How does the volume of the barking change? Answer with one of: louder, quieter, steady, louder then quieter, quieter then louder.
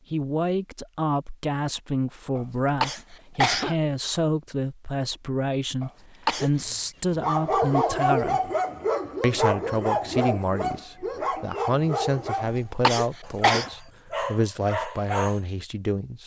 quieter.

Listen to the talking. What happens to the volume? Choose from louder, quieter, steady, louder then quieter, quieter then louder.
steady.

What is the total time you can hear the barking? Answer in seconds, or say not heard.
9 s.